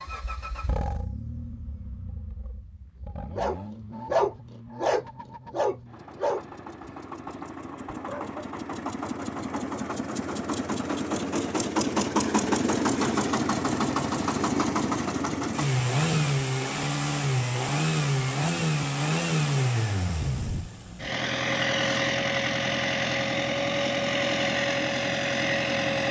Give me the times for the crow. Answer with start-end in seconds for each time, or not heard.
not heard.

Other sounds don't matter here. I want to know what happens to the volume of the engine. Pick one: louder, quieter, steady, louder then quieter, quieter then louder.
louder.